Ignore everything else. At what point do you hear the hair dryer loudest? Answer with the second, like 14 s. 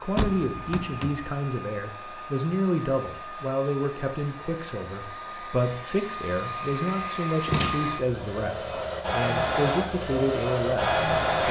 11 s.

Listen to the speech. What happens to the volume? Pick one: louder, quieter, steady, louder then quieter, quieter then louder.
steady.